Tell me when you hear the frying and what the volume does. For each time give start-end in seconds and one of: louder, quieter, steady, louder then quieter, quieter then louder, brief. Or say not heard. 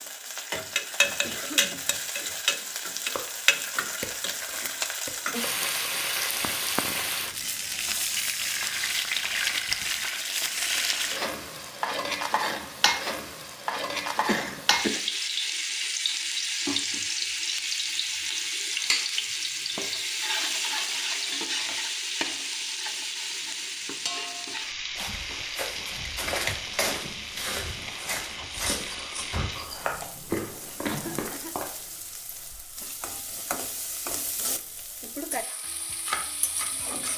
0.0-37.1 quieter.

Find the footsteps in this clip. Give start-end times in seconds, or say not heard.
24.9-31.7.